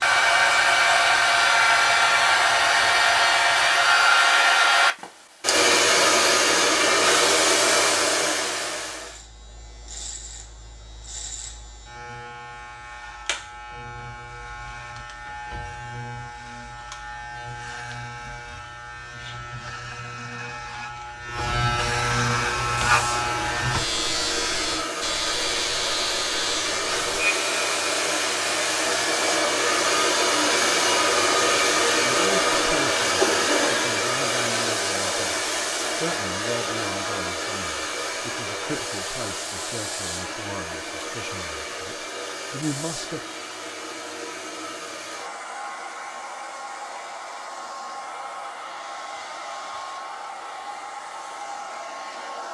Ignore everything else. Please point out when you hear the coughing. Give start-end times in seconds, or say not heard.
33.0-33.9.